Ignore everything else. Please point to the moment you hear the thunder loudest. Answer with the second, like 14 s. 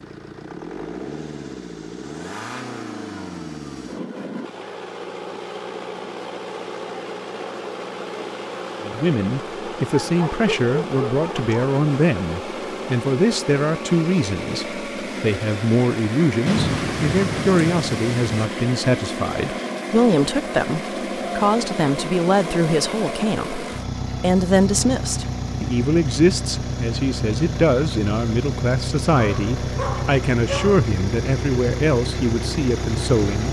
17 s.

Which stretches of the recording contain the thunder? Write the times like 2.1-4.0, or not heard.
16.4-18.4.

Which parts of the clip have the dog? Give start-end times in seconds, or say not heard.
9.7-11.7, 29.1-30.9.